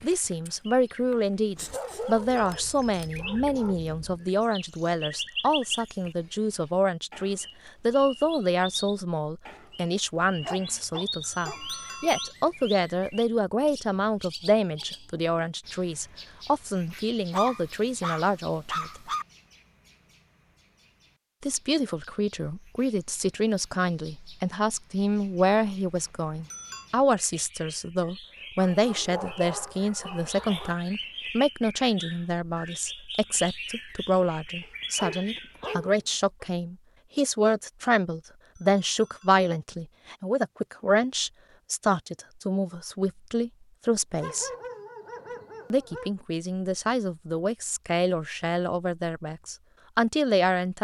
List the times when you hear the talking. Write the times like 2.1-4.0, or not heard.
0.0-19.0, 21.4-44.5, 45.7-50.7.